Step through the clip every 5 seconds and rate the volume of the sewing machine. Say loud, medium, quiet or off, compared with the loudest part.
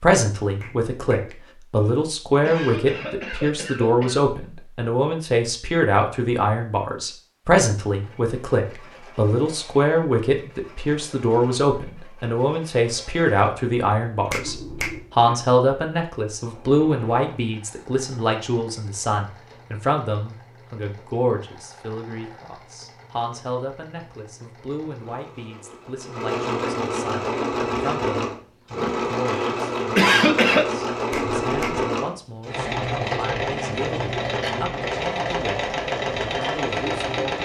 off, quiet, quiet, quiet, quiet, loud, loud, loud.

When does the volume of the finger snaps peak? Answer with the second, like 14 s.
15 s.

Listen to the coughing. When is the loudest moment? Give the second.
30 s.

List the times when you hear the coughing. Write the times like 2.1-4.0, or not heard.
1.8-4.2, 29.3-30.7.